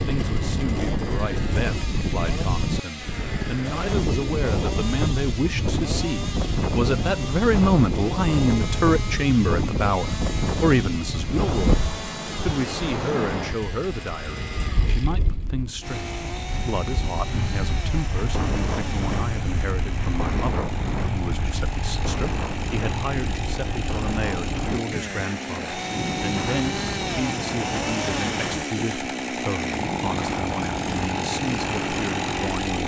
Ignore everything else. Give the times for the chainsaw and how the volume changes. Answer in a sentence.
You can hear the chainsaw from 0.0 to 32.8 s, getting louder.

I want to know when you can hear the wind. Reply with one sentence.
The wind can be heard from 0.0 to 32.5 s.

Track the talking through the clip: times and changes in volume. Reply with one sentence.
The talking can be heard from 0.1 to 32.8 s, getting louder then quieter.